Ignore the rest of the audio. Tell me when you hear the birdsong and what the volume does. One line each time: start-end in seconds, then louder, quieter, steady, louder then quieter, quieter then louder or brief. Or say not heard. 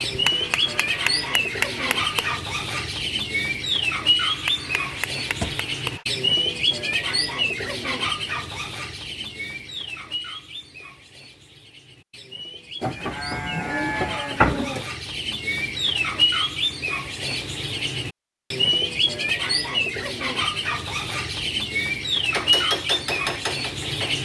0.0-24.1 quieter then louder.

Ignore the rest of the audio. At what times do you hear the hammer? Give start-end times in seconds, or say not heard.
0.0-2.4, 4.2-6.0, 22.3-24.1.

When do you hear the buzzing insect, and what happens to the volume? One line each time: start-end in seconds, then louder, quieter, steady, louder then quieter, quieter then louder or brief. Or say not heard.
not heard.